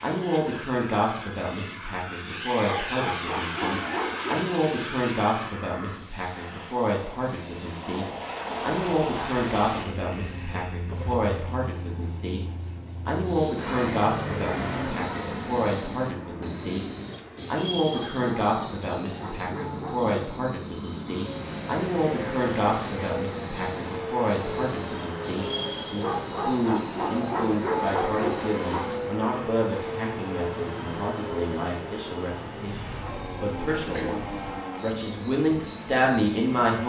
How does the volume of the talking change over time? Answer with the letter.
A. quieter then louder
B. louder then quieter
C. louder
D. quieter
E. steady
E.